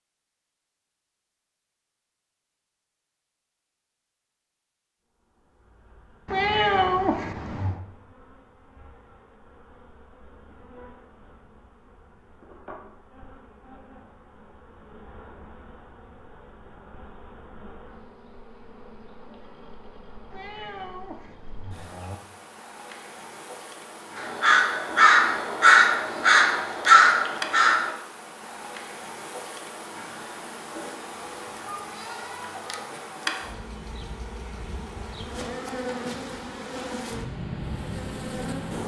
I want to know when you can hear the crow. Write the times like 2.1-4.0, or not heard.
24.1-27.9.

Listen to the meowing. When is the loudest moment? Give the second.
7 s.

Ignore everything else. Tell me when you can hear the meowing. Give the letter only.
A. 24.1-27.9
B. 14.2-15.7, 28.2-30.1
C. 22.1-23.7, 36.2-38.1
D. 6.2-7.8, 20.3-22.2
D.